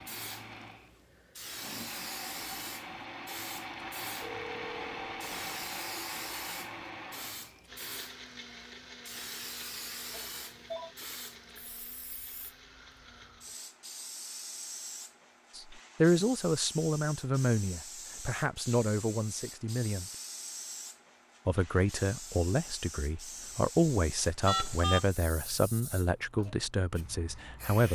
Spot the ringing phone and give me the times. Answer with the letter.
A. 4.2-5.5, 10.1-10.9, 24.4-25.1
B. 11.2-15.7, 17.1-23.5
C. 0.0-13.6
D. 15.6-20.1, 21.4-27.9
A.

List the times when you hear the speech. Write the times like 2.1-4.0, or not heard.
15.6-20.1, 21.4-27.9.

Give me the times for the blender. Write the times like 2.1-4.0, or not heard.
0.0-13.6.